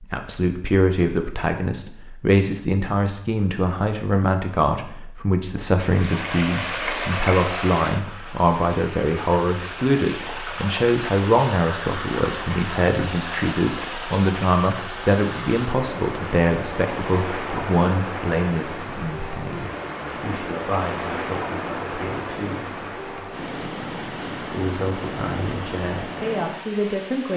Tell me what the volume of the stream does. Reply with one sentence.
The volume of the stream stays about the same.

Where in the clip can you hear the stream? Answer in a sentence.
The stream can be heard from 5.8 to 27.3 s.